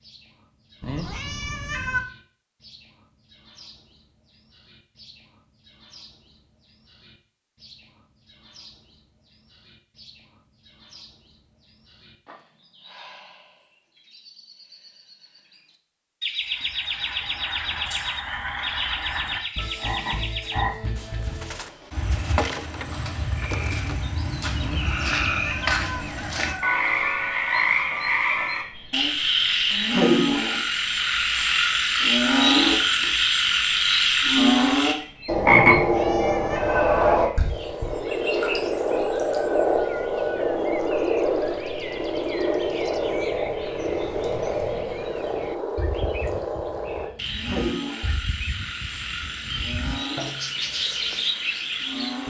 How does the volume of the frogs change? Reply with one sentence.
The loudness of the frogs goes up, then down.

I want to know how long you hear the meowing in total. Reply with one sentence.
You can hear the meowing for 4 seconds altogether.